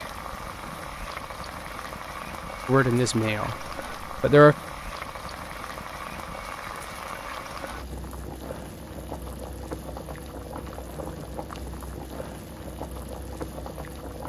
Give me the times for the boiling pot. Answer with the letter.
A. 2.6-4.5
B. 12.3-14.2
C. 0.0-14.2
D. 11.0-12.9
C.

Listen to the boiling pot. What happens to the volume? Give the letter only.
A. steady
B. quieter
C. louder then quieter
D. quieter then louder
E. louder
A.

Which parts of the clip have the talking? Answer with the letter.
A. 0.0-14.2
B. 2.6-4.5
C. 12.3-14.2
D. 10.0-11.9
B.